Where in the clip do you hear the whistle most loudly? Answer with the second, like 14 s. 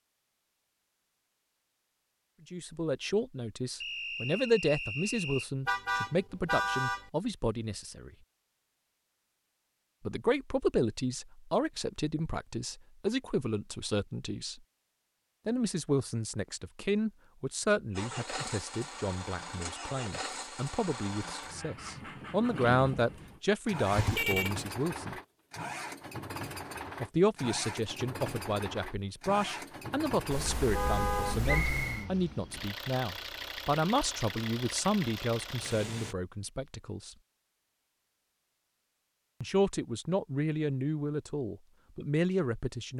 32 s.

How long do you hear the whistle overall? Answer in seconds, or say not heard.
2 s.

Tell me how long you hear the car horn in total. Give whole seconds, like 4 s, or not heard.
4 s.